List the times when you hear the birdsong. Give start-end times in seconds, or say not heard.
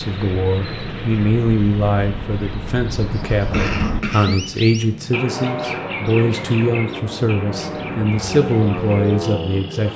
0.0-9.9.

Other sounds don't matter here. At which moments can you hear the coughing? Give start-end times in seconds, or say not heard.
3.5-4.5.